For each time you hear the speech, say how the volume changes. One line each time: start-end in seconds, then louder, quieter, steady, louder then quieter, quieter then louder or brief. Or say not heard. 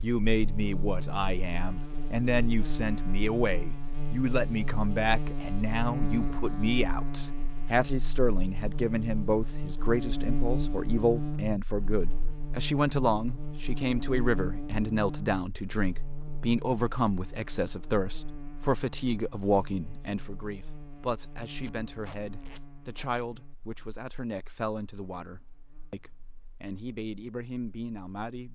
0.0-28.5 quieter.